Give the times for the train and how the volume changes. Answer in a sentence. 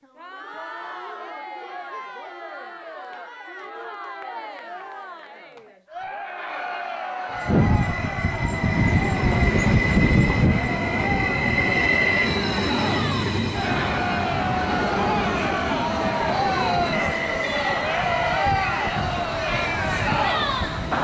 The train can be heard from 7.3 to 20.9 s, getting quieter.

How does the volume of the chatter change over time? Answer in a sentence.
The volume of the chatter goes up.